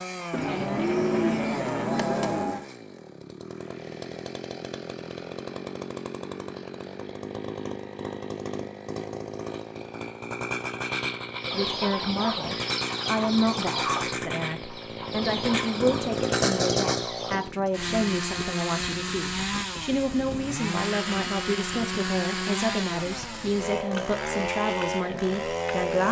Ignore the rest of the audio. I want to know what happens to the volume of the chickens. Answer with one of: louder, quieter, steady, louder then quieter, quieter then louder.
quieter.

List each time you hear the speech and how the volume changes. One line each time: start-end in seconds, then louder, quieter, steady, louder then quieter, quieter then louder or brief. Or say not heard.
11.5-26.0 steady.